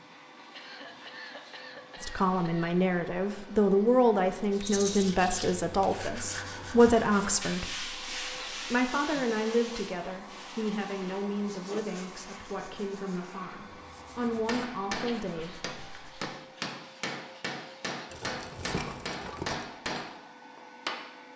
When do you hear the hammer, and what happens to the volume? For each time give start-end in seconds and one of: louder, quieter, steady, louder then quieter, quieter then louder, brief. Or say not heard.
14.2-21.1 steady.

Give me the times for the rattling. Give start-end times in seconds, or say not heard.
4.6-5.0, 11.8-12.2, 18.1-19.6.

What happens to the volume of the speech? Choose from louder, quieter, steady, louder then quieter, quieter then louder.
quieter.